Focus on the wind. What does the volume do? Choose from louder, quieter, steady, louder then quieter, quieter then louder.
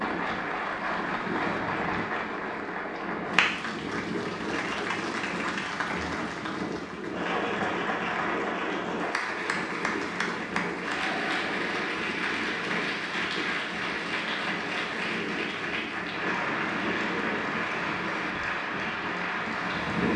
steady.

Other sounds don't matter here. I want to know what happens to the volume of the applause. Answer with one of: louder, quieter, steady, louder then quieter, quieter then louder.
steady.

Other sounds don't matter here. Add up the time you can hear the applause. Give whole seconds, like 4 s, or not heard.
20 s.